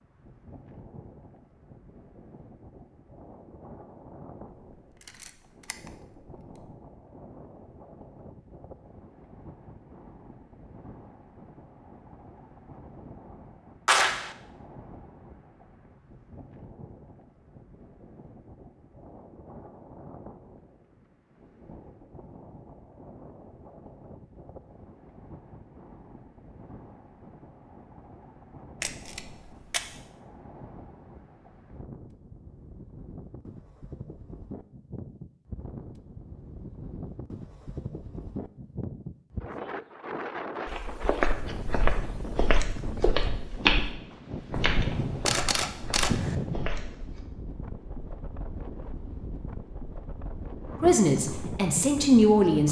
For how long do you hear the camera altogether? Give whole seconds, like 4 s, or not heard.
4 s.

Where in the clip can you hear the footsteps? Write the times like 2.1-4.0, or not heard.
40.6-47.2.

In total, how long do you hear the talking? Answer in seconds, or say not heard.
2 s.